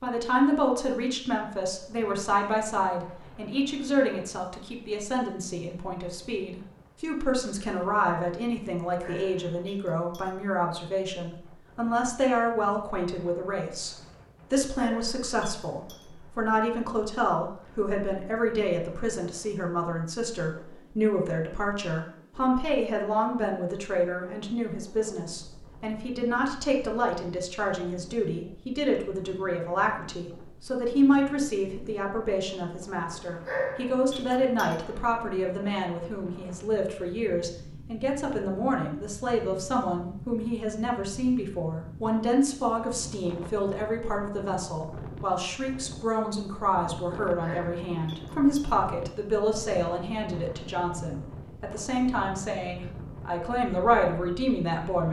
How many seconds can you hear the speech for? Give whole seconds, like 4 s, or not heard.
55 s.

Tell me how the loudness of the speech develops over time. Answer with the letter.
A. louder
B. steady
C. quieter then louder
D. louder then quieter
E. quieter
B.